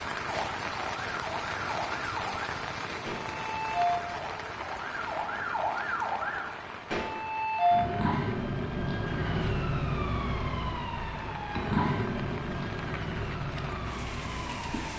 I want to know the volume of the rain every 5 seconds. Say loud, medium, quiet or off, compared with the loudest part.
loud, medium, medium.